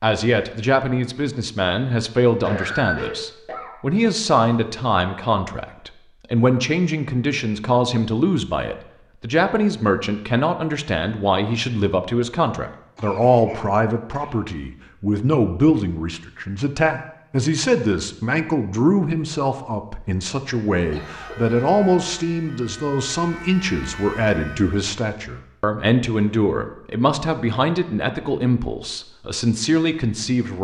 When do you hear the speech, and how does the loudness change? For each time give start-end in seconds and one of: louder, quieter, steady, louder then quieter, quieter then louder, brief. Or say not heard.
0.0-30.5 steady.